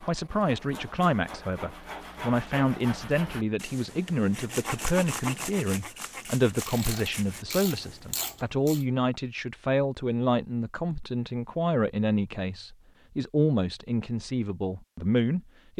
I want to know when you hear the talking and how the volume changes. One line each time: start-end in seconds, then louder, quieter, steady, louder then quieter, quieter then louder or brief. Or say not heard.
0.0-15.7 steady.